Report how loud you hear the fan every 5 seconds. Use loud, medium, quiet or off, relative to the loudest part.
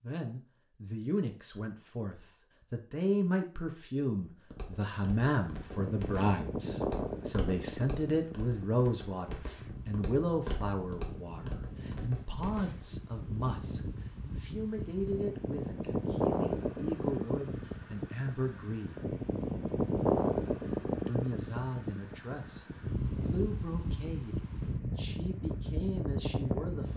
off, medium, medium, loud, loud, loud.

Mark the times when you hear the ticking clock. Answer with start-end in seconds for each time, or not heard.
not heard.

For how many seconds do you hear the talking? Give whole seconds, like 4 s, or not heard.
25 s.